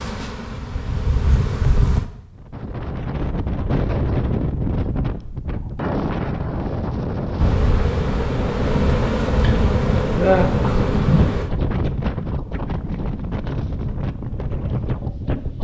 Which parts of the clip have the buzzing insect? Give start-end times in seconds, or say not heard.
0.0-2.0, 7.3-11.5.